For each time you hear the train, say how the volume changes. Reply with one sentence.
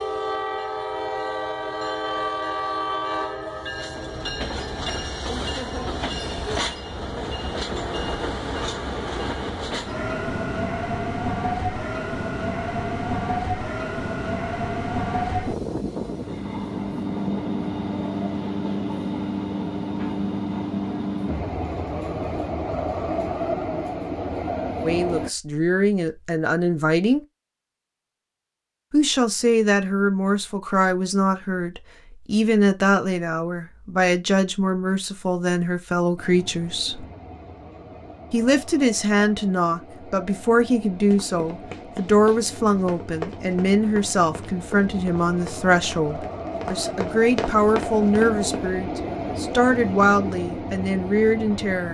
You can hear the train from 0.0 to 25.3 s, at a steady volume; and from 36.1 to 51.8 s, getting louder.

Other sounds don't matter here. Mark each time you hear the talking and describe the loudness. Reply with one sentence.
The talking can be heard briefly from 24.8 to 27.2 s; from 28.9 to 37.0 s, at a steady volume; and from 38.3 to 51.8 s, at a steady volume.